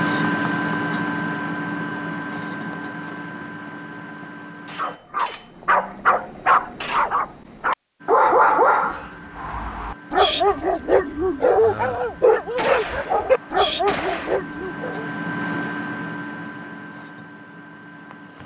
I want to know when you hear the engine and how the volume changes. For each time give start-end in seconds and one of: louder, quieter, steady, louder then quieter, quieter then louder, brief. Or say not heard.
0.0-5.0 quieter
8.0-18.4 louder then quieter.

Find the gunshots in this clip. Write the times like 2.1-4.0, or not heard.
12.6-14.4.